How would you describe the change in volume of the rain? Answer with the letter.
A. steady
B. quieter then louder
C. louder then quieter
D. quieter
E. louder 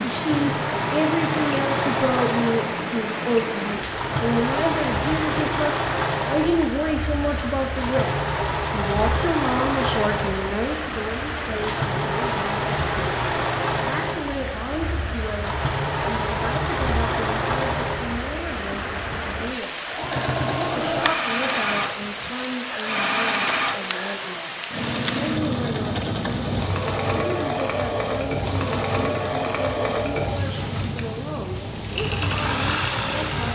A.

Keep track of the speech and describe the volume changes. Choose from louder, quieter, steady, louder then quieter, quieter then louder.
quieter.